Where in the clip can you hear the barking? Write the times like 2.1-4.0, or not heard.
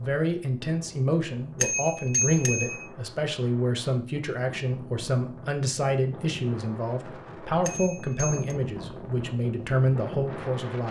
not heard.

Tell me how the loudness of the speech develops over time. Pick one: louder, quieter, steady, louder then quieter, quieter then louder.
steady.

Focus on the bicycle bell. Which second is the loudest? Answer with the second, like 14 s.
2 s.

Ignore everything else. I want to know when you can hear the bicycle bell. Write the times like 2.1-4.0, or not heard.
1.6-2.9, 7.7-8.6.